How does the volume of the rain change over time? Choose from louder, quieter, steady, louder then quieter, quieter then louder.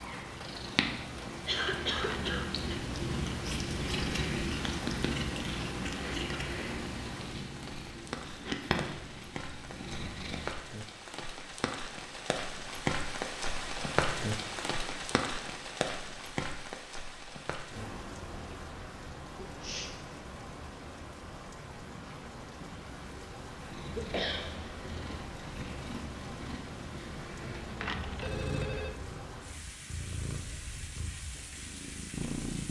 louder then quieter.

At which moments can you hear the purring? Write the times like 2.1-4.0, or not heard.
0.0-10.6, 22.6-32.6.